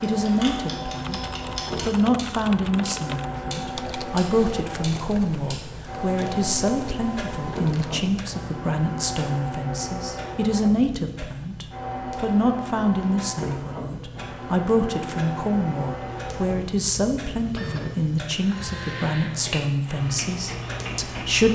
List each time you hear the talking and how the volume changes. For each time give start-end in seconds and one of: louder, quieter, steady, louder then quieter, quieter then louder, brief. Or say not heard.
0.0-21.4 steady.